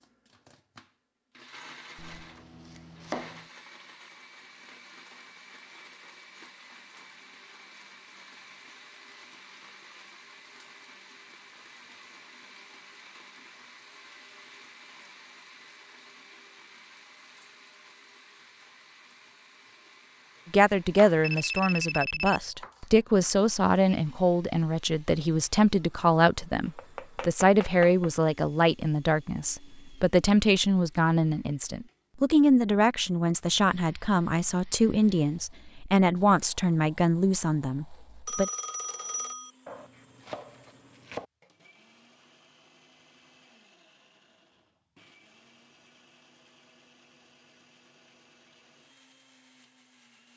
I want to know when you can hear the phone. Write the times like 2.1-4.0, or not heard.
21.2-22.4, 38.2-39.5.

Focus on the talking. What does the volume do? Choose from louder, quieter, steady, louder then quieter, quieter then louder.
steady.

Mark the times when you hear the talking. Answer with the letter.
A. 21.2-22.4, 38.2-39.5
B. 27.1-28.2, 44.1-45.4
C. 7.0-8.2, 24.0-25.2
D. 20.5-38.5
D.